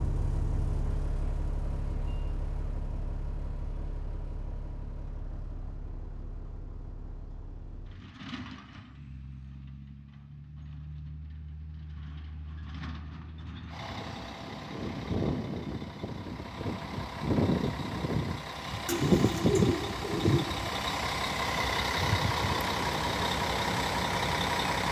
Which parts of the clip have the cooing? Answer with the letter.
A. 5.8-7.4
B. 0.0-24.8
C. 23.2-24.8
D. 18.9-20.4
D.